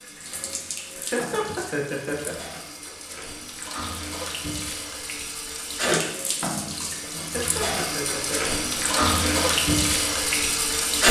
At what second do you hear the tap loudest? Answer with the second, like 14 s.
11 s.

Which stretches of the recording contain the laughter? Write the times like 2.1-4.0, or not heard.
0.9-2.4, 7.2-9.4.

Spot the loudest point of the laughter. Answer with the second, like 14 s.
1 s.